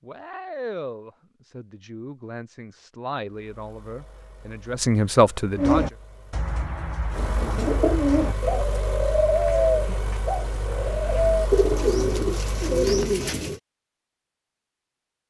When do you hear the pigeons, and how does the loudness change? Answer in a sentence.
The pigeons can be heard from 5.5 to 13.6 s, getting louder.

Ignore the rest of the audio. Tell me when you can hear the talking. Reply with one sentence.
You can hear the talking from 0.0 to 5.8 s.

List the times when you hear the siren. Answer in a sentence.
The siren can't be heard in this clip.